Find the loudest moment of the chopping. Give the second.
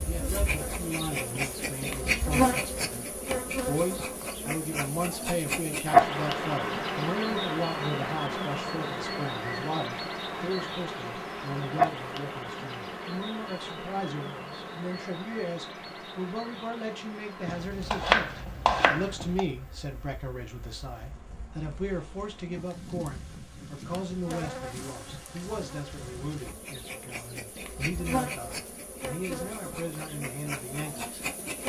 18 s.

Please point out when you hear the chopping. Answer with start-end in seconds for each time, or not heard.
17.4-19.4.